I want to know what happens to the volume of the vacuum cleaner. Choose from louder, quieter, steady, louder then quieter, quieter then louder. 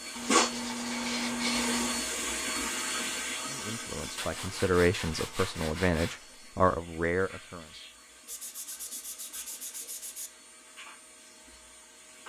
quieter.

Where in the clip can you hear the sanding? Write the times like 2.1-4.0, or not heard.
0.1-2.0, 4.2-6.2, 8.2-10.3.